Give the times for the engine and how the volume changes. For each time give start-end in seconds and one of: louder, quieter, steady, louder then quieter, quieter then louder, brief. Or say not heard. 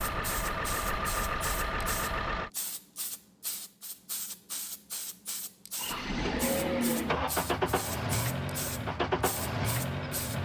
0.0-2.5 brief
5.8-10.3 steady.